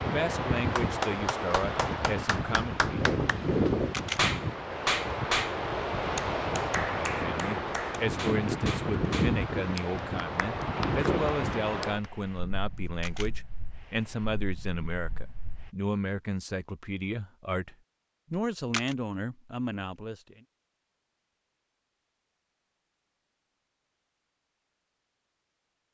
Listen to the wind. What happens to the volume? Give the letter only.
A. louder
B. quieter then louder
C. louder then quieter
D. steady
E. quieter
E.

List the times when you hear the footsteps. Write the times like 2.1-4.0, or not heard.
not heard.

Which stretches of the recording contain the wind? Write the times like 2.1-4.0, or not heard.
0.0-15.7.